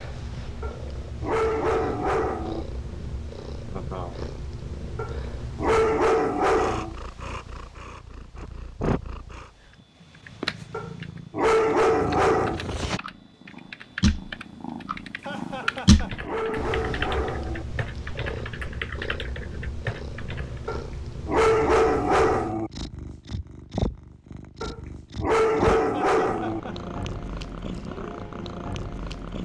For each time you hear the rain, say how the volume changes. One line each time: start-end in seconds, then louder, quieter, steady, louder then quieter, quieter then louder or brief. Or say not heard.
not heard.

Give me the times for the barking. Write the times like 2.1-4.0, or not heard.
0.6-2.6, 5.0-7.0, 10.7-12.6, 15.6-17.6, 20.6-22.7, 24.6-26.6.